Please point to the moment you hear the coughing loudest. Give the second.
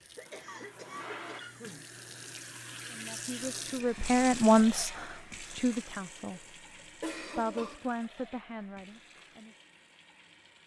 7 s.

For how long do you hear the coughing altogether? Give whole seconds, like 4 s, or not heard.
3 s.